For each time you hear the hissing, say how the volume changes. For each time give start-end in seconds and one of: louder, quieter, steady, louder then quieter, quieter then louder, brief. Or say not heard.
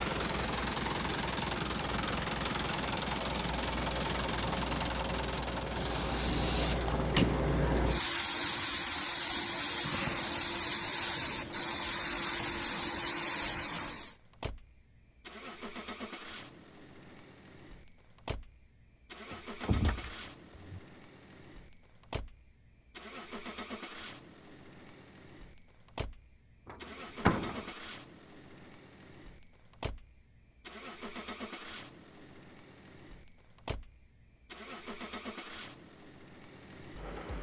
0.0-14.2 louder.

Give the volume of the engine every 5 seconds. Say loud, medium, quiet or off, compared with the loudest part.
loud, medium, quiet, quiet, quiet, quiet, quiet, quiet.